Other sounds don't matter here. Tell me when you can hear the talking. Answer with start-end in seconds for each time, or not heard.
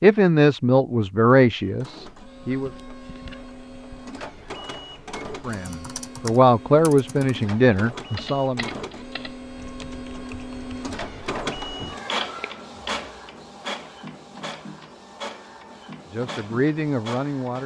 0.0-2.7, 5.5-8.7, 16.1-17.6.